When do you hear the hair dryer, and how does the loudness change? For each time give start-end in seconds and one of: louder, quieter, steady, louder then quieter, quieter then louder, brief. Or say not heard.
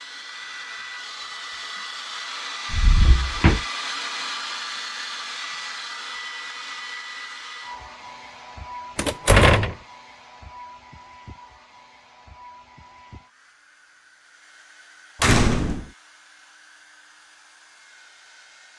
0.0-18.7 quieter.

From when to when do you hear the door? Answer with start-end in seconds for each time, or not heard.
2.7-3.6, 8.9-9.8, 15.2-15.8.